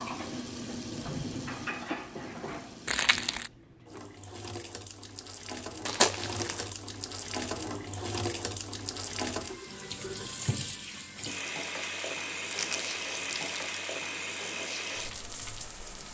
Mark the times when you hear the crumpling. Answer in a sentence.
You can hear the crumpling from 2.9 to 3.5 s, from 5.8 to 6.7 s and from 12.5 to 13.8 s.